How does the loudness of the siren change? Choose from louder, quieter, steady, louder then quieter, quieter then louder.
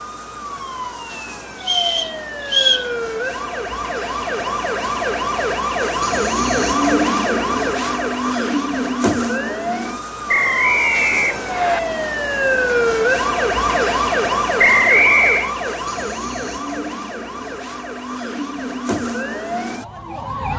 louder then quieter.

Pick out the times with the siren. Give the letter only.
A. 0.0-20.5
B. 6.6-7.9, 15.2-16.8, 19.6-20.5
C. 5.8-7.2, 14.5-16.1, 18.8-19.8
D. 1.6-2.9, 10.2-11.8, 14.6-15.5
A.